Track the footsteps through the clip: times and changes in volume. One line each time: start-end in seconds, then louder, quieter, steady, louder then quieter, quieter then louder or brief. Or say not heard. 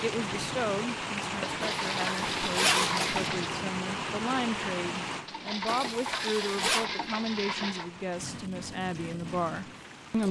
not heard.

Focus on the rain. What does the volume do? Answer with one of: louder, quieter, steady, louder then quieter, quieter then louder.
quieter.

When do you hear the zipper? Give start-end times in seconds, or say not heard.
1.6-3.3, 5.7-6.8.